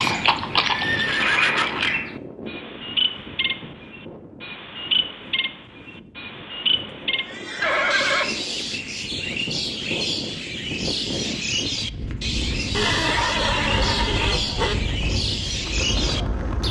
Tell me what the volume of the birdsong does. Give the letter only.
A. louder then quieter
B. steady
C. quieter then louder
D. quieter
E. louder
B.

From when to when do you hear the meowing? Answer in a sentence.
You can hear the meowing from 7.2 to 8.0 s.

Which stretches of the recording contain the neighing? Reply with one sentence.
You can hear the neighing from 0.0 to 1.9 s, from 7.6 to 8.2 s and from 12.7 to 14.8 s.